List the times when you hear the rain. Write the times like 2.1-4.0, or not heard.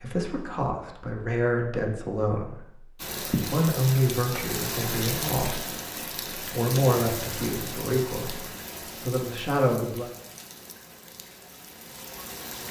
3.0-12.6.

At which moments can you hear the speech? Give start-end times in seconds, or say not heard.
0.0-10.1.